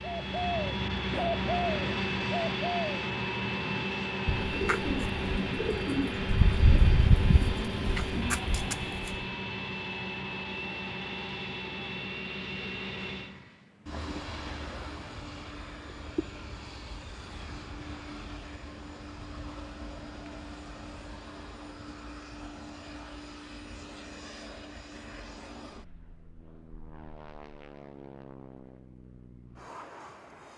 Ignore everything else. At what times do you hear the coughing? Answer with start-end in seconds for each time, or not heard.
not heard.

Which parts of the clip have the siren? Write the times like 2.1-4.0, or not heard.
not heard.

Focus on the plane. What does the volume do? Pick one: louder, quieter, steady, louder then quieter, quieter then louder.
quieter.